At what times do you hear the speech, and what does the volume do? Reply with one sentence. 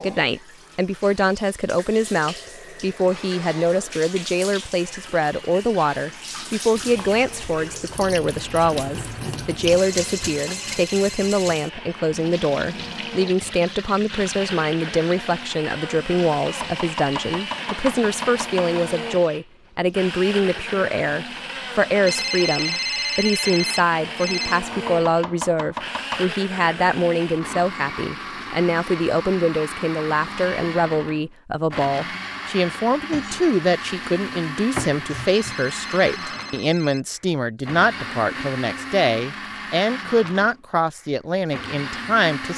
The speech can be heard from 0.0 to 42.5 s, at a steady volume.